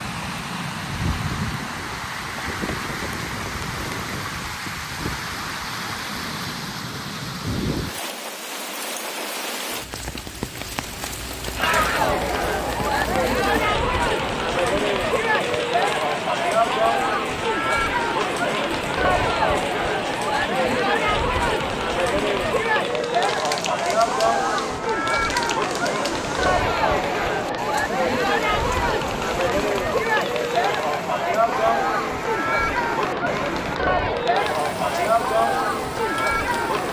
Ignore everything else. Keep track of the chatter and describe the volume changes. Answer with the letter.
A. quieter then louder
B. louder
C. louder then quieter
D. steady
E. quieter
D.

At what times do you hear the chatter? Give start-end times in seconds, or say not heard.
11.6-36.8.